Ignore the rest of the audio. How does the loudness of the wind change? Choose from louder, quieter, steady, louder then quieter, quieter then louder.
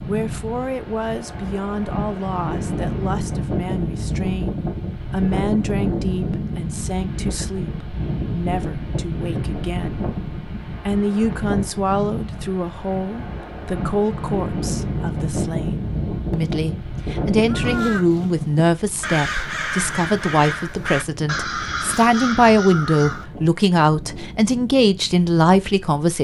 quieter.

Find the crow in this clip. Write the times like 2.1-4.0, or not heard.
17.4-23.2.